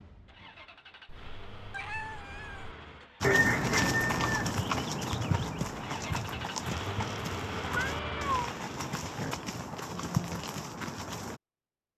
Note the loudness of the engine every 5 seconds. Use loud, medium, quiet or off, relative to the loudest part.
medium, loud, off.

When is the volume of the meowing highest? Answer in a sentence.
The volume of the meowing peaks at 8 seconds.